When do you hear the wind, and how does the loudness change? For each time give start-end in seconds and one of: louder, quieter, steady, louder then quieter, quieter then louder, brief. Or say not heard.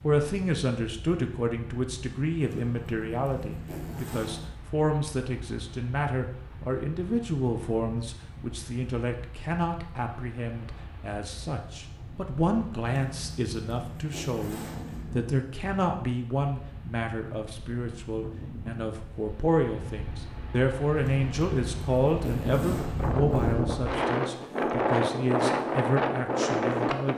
0.0-27.1 louder.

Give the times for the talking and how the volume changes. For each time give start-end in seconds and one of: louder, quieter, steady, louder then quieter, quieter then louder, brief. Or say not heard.
0.0-27.1 steady.